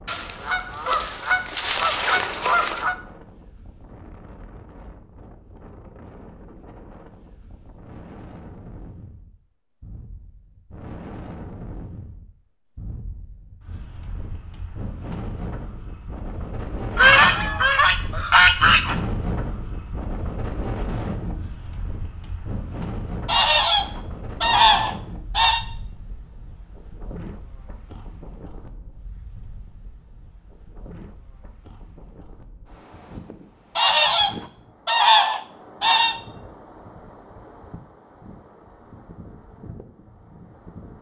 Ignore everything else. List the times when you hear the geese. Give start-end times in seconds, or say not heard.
0.1-3.0, 16.9-18.9, 23.2-25.6, 33.8-36.1.